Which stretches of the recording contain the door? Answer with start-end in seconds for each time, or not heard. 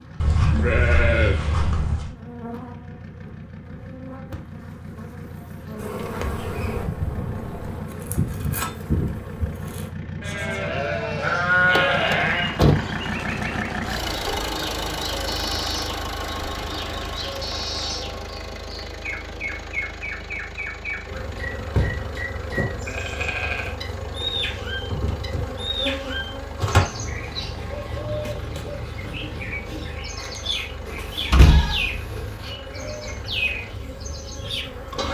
6.0-7.8, 11.7-12.8, 30.9-32.2.